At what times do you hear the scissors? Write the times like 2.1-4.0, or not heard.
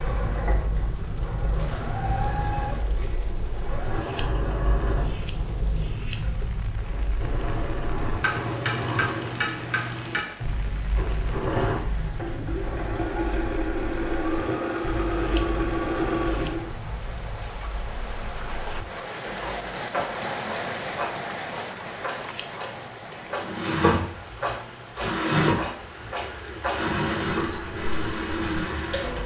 4.0-6.4, 15.1-16.6, 22.1-22.6.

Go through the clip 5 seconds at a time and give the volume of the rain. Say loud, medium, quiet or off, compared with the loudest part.
medium, medium, medium, loud, loud, medium.